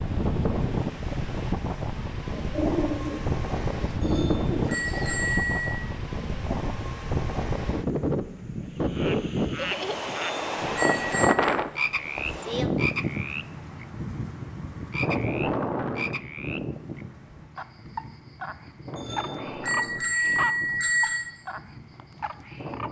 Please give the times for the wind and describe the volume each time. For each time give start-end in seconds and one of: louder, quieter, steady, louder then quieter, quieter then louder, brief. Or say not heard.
0.0-22.8 quieter.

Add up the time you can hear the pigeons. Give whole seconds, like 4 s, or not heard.
3 s.